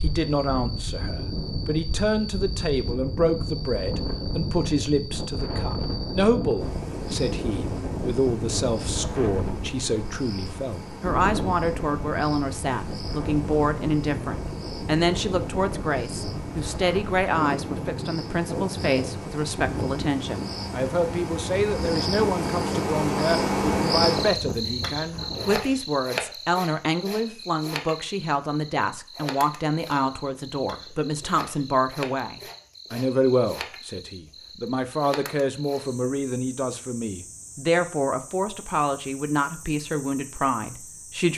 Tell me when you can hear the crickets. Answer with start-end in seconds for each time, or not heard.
0.0-41.3.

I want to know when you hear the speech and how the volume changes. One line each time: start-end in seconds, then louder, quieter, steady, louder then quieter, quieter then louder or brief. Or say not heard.
0.0-41.3 steady.